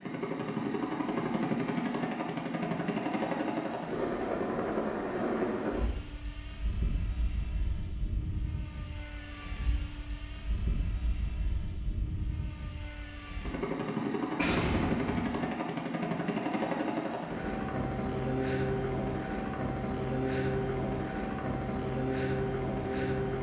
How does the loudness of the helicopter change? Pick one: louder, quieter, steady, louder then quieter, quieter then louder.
quieter then louder.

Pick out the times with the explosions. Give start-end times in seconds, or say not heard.
14.3-15.4.